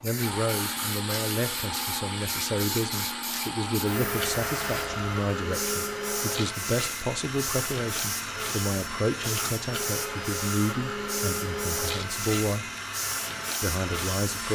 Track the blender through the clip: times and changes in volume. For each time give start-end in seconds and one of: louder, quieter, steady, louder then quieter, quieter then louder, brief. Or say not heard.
0.1-14.5 steady.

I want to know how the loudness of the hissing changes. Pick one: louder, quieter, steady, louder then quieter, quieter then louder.
steady.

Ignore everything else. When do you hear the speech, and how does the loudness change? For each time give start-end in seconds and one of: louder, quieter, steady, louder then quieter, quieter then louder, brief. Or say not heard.
0.0-12.7 steady
13.6-14.5 brief.